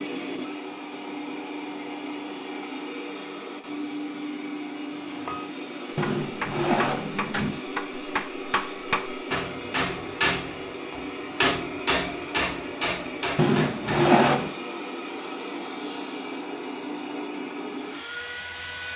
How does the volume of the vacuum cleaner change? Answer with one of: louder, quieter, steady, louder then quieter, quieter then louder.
steady.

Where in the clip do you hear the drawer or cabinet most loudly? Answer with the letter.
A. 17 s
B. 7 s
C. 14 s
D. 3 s
C.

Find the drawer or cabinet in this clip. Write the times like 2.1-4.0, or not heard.
6.0-7.6, 13.3-14.6.